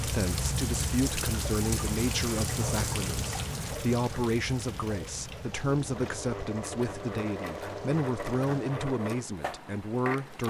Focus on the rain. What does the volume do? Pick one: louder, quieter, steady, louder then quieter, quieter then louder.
quieter.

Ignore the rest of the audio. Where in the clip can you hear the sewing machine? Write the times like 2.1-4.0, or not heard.
5.5-10.4.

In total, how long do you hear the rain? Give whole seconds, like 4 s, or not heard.
9 s.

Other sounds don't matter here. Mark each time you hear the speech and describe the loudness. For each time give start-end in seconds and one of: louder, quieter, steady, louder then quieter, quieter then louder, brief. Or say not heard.
0.0-10.4 steady.